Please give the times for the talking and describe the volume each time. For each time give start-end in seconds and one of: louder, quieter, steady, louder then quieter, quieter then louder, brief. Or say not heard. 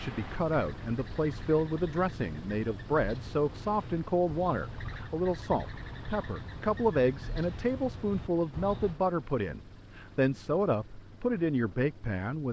0.0-12.4 steady.